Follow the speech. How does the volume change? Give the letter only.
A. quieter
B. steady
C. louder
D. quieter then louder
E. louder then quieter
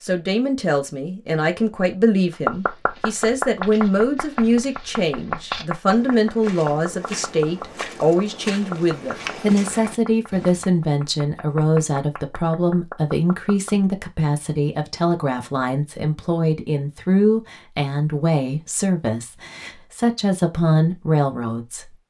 B.